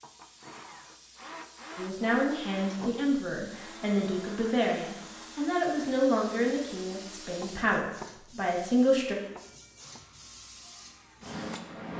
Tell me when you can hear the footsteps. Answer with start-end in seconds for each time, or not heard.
not heard.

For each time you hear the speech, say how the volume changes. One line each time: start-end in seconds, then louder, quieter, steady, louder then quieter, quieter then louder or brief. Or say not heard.
1.8-9.2 steady.